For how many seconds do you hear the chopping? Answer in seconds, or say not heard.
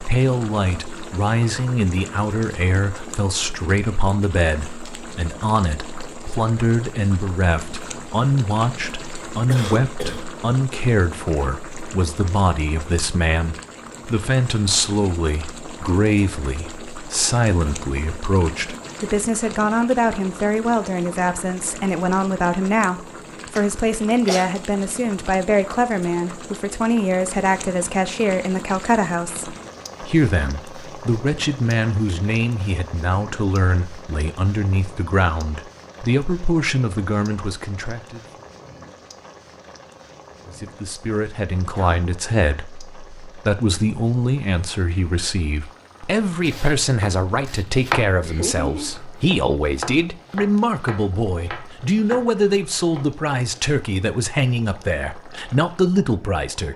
7 s.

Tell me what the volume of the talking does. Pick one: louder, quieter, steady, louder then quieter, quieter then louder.
steady.